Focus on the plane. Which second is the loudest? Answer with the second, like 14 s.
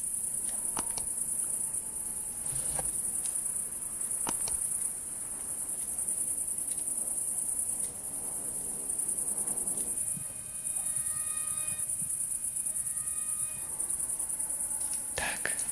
10 s.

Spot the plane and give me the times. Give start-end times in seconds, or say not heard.
0.0-15.6.